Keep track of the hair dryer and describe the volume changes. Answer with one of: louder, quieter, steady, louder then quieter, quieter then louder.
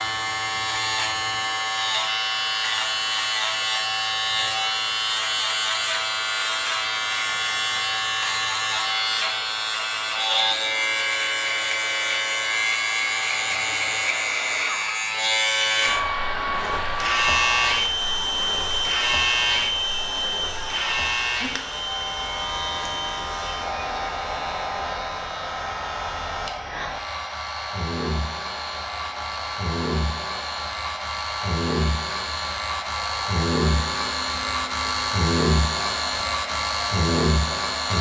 louder then quieter.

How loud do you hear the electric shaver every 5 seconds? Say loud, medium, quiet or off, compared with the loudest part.
loud, loud, loud, loud, medium, medium, loud, loud.